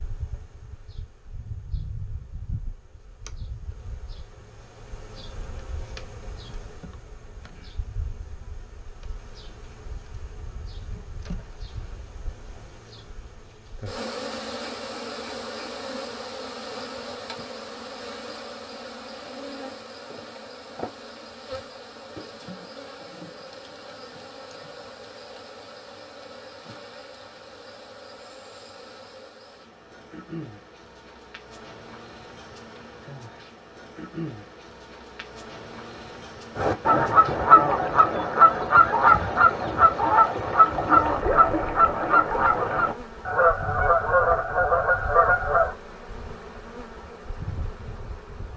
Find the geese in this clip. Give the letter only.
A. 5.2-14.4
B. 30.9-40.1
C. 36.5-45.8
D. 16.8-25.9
C.